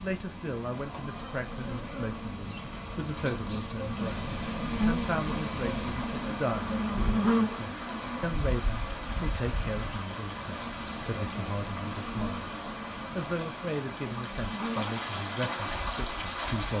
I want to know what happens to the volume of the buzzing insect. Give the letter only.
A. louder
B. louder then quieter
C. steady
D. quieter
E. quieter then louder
B.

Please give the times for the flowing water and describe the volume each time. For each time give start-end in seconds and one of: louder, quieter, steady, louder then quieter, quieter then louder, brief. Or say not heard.
0.0-16.7 louder.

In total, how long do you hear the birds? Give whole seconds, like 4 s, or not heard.
not heard.